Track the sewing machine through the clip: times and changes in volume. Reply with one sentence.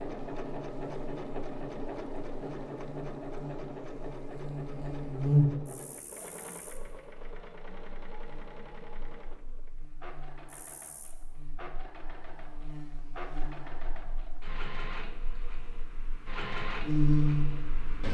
You can hear the sewing machine from 0.0 to 18.0 s, getting quieter then louder.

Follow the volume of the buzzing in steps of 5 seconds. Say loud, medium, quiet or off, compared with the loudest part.
quiet, loud, quiet, loud.